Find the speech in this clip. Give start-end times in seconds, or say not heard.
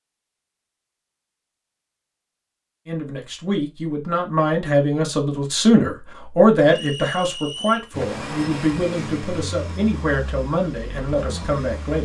2.9-12.0.